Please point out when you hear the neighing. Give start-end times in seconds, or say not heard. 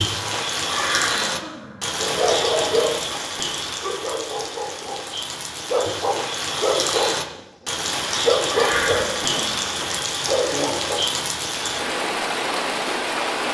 0.7-2.0, 8.4-10.0.